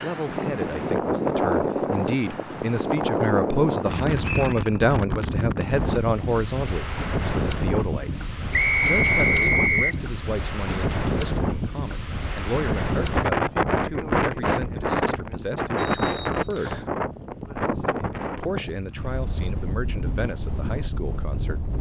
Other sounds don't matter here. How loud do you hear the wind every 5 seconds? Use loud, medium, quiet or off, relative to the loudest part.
loud, loud, loud, loud, medium.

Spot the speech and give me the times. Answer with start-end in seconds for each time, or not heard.
0.0-8.1, 8.8-16.8, 18.4-21.6.